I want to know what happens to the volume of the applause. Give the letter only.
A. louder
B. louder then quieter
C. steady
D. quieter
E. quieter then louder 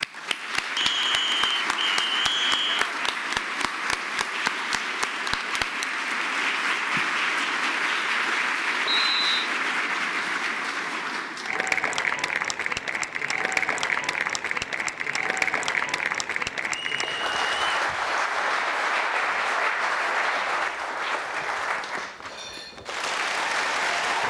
C.